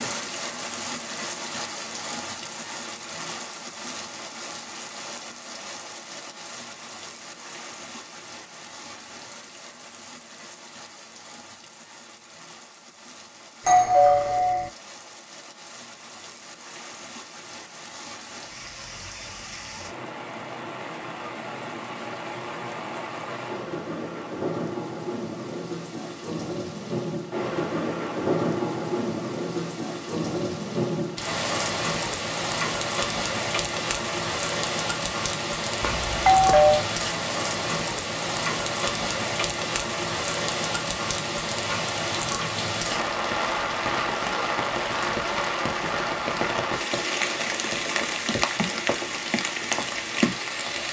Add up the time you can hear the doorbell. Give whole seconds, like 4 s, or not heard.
2 s.